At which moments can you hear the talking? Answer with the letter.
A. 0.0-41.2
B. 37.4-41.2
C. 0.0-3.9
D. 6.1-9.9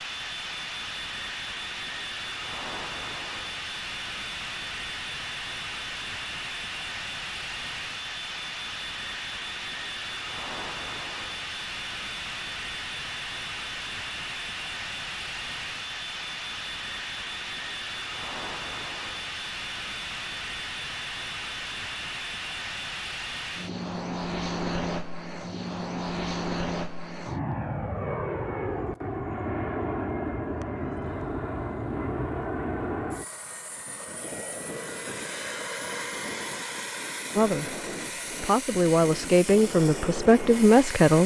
B.